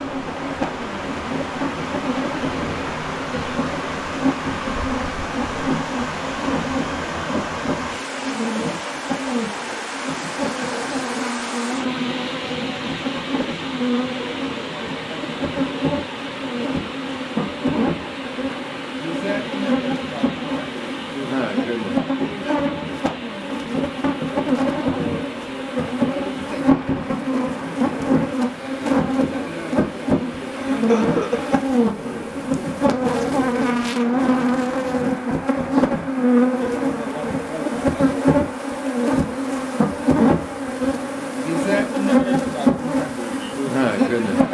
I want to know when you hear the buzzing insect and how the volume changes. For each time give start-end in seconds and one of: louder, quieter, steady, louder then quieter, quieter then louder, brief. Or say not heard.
0.0-44.4 louder.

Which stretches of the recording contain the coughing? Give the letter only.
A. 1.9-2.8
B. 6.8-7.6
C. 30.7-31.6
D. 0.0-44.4
C.